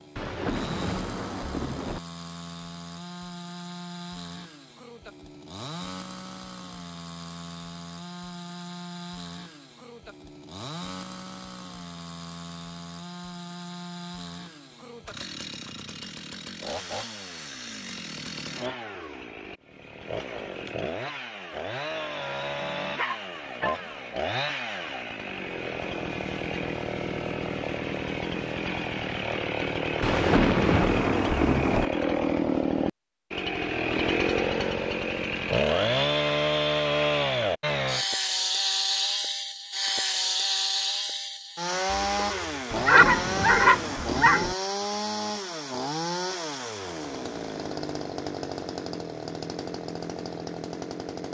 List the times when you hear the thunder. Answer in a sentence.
The thunder can be heard from 0.1 to 2.0 s, from 30.0 to 31.9 s and from 42.7 to 44.5 s.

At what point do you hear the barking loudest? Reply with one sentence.
The loudest moment of the barking is at 43 seconds.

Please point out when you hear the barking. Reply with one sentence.
The barking can be heard from 22.6 to 24.1 s and from 42.1 to 44.5 s.